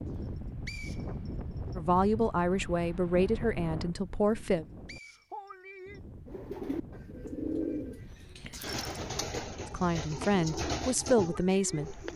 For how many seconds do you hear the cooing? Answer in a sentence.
You can hear the cooing for 6 seconds altogether.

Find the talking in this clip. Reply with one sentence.
The talking can be heard from 1.8 to 4.7 s and from 9.7 to 11.9 s.